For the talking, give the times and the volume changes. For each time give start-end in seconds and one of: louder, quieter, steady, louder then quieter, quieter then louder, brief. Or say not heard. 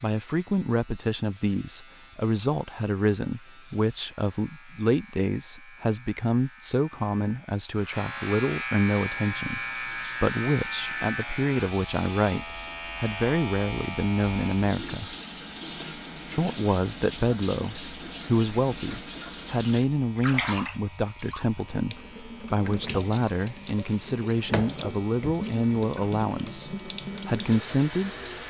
0.0-15.2 steady
16.4-28.1 steady.